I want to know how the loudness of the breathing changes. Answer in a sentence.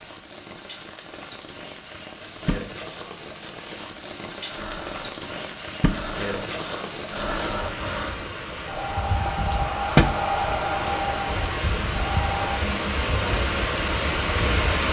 The loudness of the breathing goes up.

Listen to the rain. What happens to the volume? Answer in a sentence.
The loudness of the rain goes up.